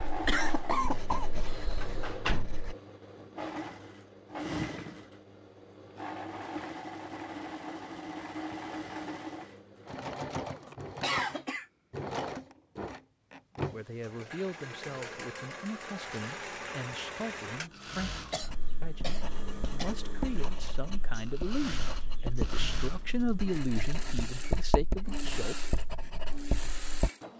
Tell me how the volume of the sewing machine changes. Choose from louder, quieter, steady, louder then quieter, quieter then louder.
steady.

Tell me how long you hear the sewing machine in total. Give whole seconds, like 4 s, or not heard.
27 s.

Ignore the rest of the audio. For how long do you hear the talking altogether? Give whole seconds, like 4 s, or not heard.
12 s.